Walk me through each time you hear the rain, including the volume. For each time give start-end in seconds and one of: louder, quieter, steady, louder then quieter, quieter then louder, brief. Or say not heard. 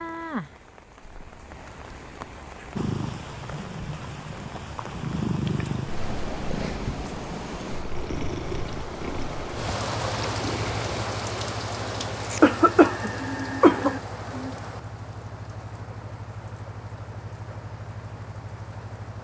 0.0-19.1 louder then quieter.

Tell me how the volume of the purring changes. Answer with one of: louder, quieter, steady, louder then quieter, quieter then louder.
louder then quieter.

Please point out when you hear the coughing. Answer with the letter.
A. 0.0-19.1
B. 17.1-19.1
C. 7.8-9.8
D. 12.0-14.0
D.